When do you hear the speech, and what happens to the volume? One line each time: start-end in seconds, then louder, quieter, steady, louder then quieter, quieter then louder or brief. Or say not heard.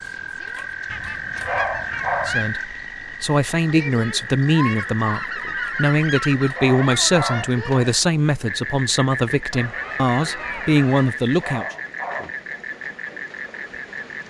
2.2-11.7 steady.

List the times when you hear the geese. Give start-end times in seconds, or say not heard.
0.8-2.5, 5.0-6.6, 9.5-11.2.